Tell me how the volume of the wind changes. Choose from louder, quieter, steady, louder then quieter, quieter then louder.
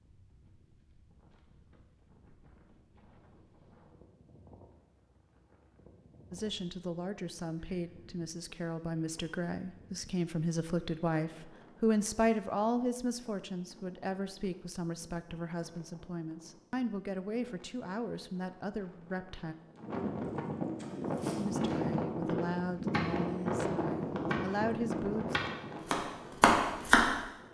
louder.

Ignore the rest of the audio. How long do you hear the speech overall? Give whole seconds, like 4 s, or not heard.
17 s.